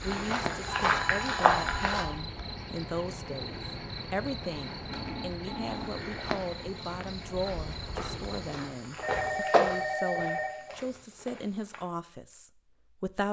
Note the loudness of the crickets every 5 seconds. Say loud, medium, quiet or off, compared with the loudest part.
loud, loud, off.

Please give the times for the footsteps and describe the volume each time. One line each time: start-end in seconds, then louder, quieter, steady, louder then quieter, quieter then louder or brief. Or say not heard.
0.0-2.0 brief
5.7-11.8 louder then quieter.